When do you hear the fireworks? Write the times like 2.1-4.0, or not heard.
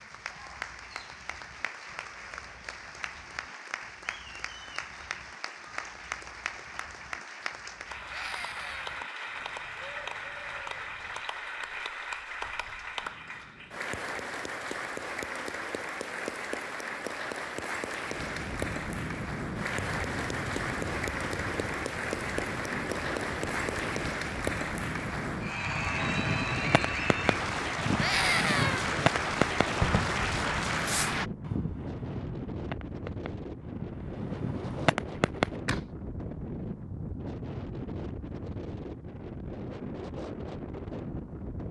25.6-35.9.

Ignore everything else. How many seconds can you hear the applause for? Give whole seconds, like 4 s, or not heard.
31 s.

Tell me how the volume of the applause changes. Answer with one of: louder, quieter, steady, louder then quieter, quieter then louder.
louder.